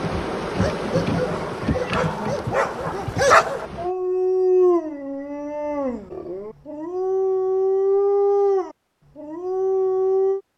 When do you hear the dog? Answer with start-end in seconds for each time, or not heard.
0.6-10.4.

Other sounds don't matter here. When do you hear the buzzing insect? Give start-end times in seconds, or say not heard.
0.0-3.9.